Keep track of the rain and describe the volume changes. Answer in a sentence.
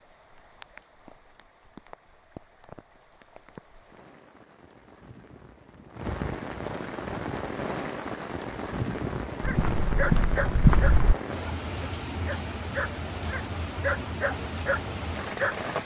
The loudness of the rain goes up.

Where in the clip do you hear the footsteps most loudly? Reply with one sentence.
The volume of the footsteps peaks at 11 seconds.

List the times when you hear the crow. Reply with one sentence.
The crow can't be heard in this clip.